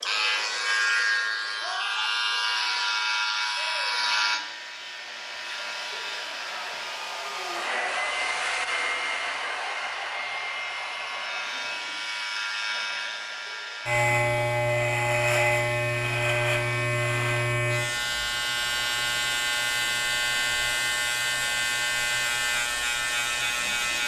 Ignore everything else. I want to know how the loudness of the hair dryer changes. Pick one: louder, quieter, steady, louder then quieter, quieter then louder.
louder then quieter.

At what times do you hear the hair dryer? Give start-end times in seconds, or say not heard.
0.0-17.6.